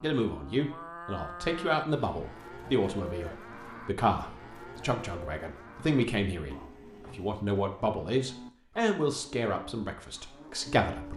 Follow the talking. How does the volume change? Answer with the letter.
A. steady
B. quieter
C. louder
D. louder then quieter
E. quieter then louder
A.